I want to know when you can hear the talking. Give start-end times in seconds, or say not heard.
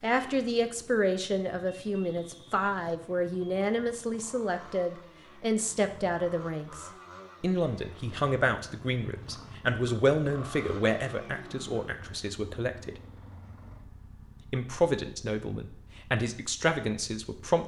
0.0-13.0, 14.4-17.6.